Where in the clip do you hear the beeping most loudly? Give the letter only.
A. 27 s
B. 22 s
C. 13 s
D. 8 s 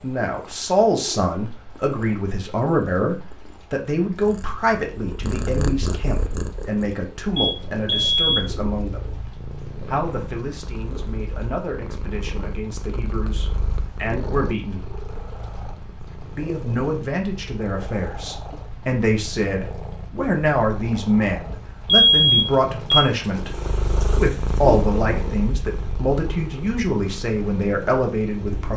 B.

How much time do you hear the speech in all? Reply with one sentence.
You can hear the speech for 26 seconds altogether.